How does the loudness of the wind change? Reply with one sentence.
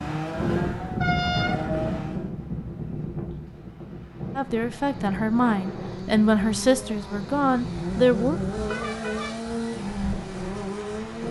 The loudness of the wind goes down.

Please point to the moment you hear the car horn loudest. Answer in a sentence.
The loudest moment of the car horn is at 1 second.